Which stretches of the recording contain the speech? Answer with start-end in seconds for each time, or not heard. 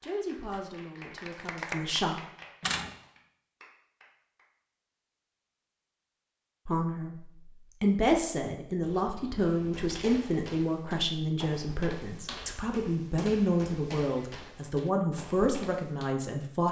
0.0-2.1, 6.7-16.6.